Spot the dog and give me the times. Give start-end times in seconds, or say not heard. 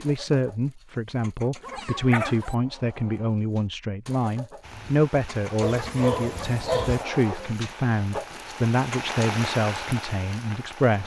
1.6-2.5, 5.6-7.0.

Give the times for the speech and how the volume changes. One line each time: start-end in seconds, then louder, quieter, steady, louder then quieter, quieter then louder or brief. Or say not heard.
0.0-11.0 steady.